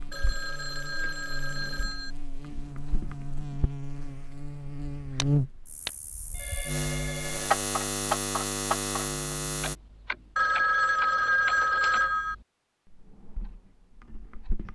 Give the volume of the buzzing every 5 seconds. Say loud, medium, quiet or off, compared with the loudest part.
medium, loud, off.